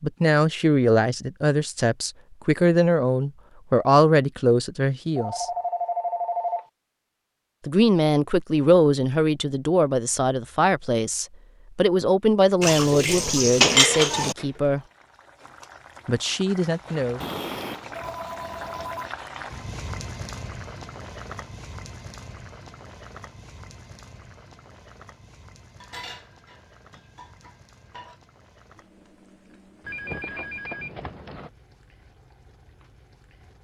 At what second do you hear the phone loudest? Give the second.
6 s.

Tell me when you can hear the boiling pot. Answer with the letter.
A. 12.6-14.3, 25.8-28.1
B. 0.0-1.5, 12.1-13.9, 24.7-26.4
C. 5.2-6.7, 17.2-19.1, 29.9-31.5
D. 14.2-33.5
D.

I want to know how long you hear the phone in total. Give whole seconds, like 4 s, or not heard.
5 s.